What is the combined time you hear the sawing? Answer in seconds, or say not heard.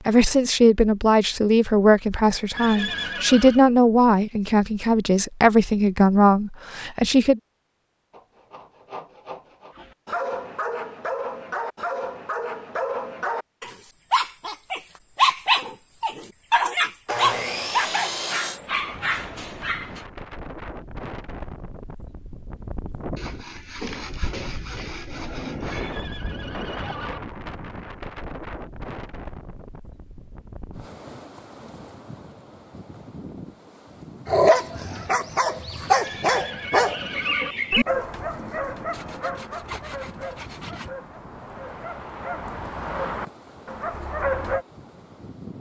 8 s.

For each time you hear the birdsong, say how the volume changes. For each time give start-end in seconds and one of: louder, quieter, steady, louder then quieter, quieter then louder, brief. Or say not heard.
not heard.